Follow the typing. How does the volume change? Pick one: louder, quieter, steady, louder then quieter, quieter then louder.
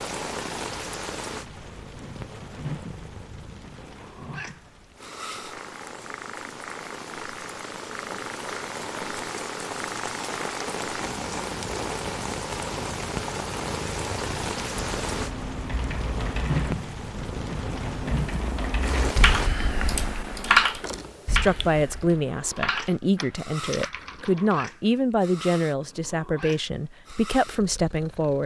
louder then quieter.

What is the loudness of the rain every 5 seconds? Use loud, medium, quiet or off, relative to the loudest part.
medium, medium, loud, loud, off, off.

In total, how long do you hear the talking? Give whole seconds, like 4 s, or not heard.
7 s.